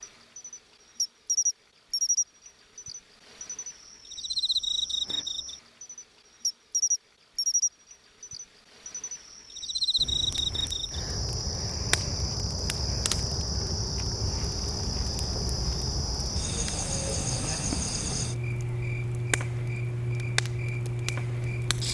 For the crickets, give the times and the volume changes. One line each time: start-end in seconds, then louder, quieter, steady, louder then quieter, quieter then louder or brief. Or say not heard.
0.0-21.8 steady.